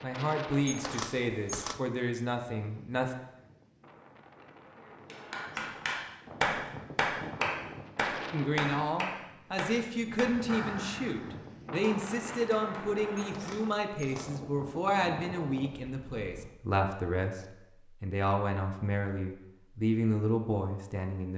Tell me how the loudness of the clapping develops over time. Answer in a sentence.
The volume of the clapping goes down.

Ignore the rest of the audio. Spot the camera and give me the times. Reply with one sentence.
The camera can be heard from 0.7 to 1.8 s and from 13.2 to 14.4 s.